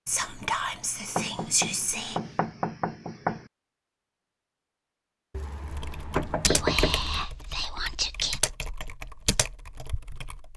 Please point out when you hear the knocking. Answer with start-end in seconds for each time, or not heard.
1.1-3.5, 5.3-7.2.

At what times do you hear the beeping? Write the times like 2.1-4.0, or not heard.
not heard.